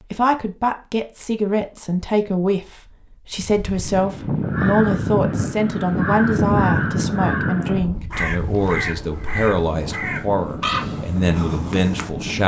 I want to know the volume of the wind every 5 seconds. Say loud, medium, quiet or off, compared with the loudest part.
loud, loud, medium.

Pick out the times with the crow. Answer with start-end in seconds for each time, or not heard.
4.4-12.1.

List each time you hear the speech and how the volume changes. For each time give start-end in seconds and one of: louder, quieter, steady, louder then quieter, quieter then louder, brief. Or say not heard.
0.1-12.4 steady.